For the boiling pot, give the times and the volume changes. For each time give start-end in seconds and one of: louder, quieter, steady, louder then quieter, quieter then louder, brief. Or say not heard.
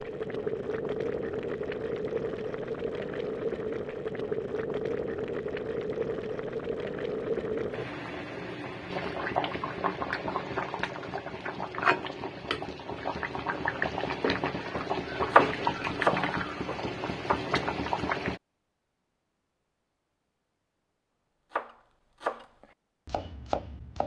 0.0-18.4 steady.